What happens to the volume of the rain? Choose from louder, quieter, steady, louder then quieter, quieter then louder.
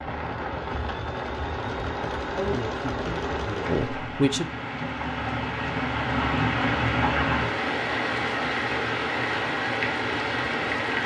louder.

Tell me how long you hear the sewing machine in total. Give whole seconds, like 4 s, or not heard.
4 s.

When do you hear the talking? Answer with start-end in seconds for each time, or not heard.
2.4-4.5.